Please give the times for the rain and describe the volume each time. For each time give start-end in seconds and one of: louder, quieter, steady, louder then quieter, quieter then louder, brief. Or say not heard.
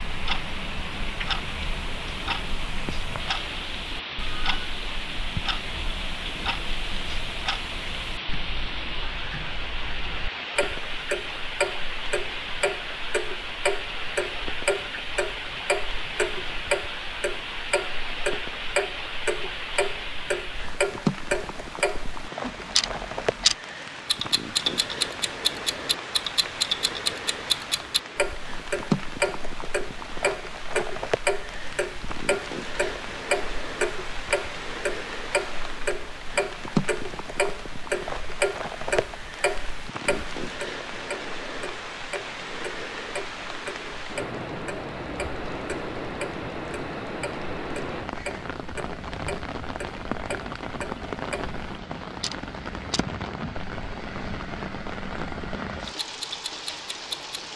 0.0-57.5 steady.